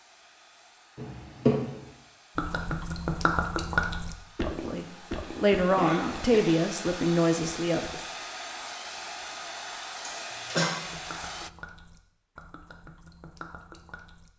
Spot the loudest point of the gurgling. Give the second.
4 s.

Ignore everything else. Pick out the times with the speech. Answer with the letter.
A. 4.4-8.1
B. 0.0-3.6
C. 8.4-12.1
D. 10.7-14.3
A.